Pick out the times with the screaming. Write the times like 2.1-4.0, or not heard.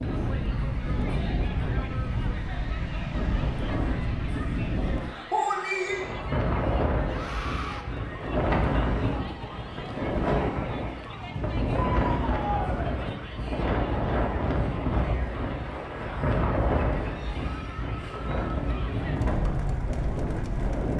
7.0-7.8, 11.8-13.0.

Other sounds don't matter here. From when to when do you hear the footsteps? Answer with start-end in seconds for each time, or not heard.
not heard.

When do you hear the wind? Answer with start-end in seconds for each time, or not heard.
0.0-20.9.